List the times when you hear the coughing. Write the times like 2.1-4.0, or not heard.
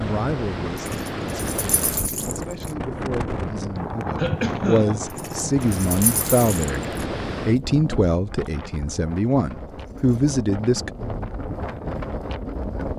4.2-5.0.